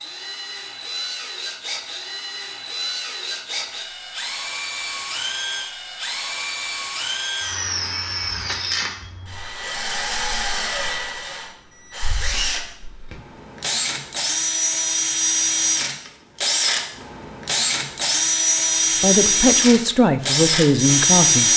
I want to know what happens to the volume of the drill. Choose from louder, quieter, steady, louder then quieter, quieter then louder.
louder.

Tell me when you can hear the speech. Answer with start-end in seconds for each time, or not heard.
19.0-21.5.